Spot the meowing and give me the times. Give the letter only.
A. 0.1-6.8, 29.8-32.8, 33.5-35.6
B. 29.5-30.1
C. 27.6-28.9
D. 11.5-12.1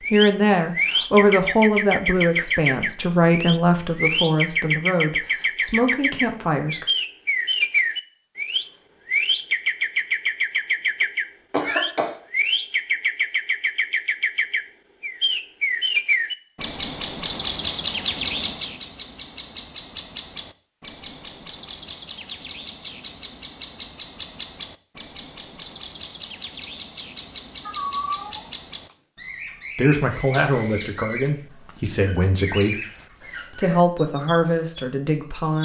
C.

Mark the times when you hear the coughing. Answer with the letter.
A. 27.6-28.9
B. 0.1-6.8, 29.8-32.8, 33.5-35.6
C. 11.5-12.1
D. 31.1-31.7
C.